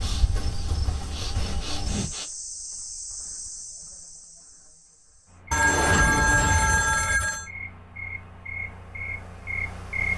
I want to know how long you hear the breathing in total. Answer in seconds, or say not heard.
2 s.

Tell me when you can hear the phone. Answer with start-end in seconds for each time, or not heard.
5.5-7.5.